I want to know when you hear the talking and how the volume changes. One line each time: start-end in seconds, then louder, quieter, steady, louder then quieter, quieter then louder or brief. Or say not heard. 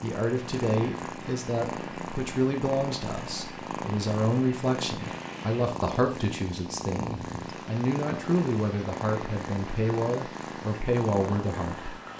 0.0-11.9 steady.